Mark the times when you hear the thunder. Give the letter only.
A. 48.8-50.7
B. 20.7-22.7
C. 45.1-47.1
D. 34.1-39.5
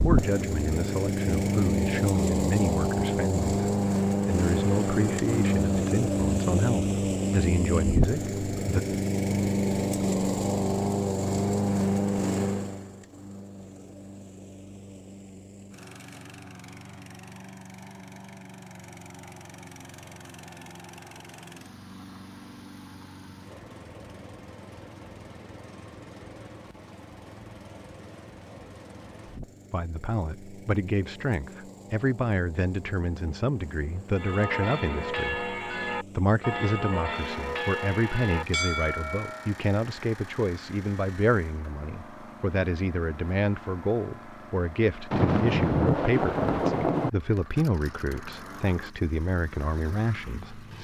C.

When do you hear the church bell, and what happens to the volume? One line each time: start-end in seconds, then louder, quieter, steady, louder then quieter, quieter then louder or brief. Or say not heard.
34.1-39.5 steady.